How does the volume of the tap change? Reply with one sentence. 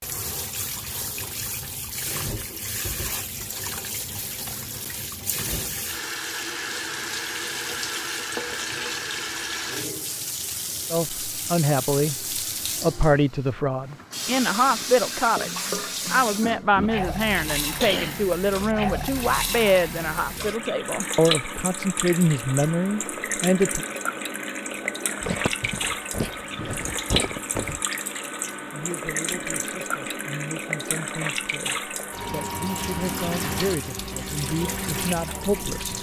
The volume of the tap stays about the same.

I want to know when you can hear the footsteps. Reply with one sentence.
The footsteps can be heard from 25.2 to 27.8 s.